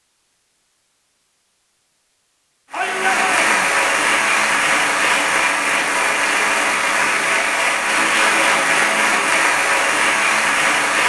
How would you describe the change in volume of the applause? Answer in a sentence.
The volume of the applause stays about the same.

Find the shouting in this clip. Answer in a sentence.
You can hear the shouting from 2.7 to 3.7 s.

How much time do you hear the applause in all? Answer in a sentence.
You can hear the applause for 8 seconds altogether.